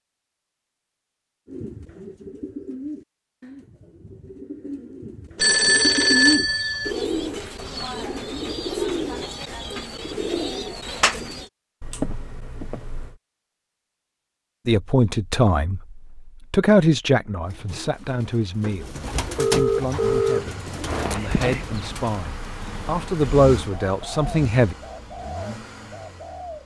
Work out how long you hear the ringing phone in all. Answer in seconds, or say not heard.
5 s.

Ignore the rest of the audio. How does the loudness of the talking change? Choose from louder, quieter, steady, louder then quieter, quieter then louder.
quieter then louder.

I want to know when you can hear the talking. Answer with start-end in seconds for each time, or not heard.
14.7-24.8.